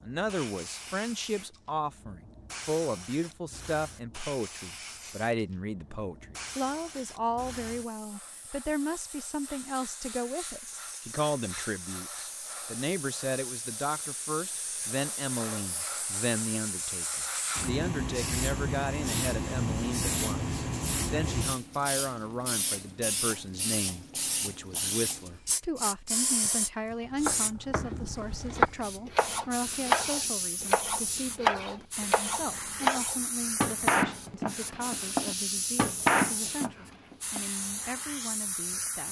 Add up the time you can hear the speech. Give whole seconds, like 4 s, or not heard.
39 s.